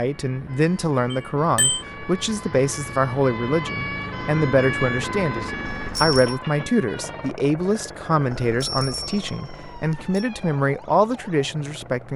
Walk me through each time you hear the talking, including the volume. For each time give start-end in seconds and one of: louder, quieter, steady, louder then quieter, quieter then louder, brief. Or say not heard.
0.0-12.1 steady.